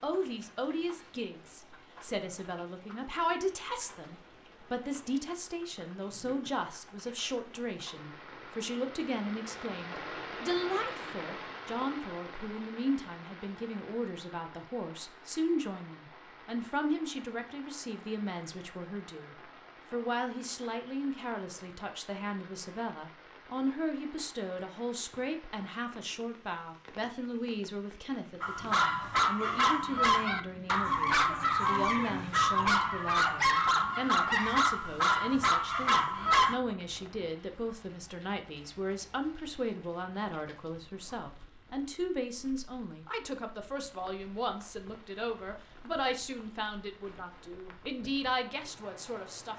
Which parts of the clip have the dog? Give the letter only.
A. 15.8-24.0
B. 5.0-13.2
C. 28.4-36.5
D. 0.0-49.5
C.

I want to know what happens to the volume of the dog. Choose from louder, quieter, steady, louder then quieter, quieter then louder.
steady.